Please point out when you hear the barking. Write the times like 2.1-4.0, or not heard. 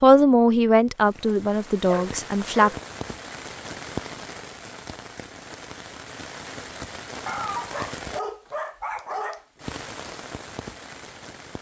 1.9-2.8, 7.2-9.4.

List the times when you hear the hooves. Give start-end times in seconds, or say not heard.
not heard.